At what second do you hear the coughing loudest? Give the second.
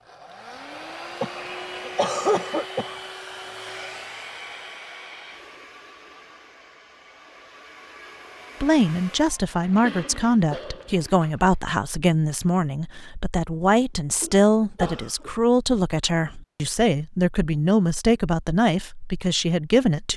2 s.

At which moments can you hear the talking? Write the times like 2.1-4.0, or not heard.
8.6-20.1.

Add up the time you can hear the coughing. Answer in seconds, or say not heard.
5 s.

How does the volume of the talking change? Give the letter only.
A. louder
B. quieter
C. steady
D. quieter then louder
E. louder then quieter
C.